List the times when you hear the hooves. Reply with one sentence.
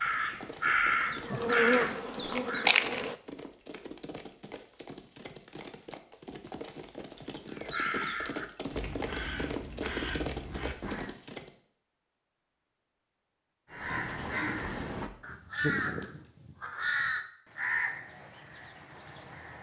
You can hear the hooves from 0.1 to 11.5 s.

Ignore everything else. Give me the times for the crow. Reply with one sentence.
You can hear the crow from 0.0 to 2.7 s, from 7.5 to 11.2 s and from 13.7 to 19.5 s.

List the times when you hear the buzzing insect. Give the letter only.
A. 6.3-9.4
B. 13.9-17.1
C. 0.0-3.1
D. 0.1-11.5
C.